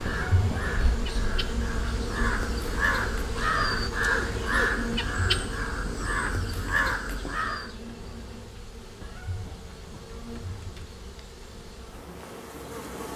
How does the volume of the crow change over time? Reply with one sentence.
The volume of the crow goes up.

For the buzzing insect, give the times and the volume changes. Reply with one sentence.
You can hear the buzzing insect from 0.0 to 13.1 s, getting quieter.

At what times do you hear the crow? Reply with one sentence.
The crow can be heard from 0.0 to 7.7 s.